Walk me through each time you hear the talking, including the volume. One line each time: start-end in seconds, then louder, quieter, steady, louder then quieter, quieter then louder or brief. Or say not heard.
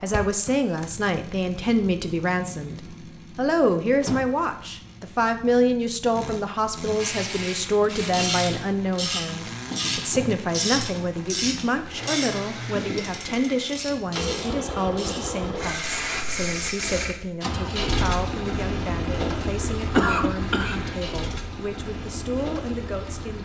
0.0-23.4 quieter.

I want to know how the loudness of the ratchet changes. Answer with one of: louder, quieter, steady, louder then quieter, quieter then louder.
quieter.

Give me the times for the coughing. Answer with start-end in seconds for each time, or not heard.
19.8-20.9.